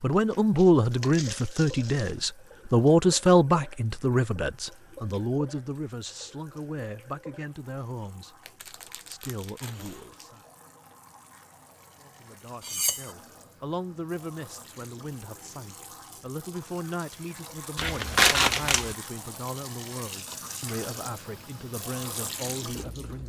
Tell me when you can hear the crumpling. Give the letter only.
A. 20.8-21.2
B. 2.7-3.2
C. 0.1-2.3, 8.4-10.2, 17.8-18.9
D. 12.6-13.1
C.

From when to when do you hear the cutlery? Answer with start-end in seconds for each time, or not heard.
12.6-13.1.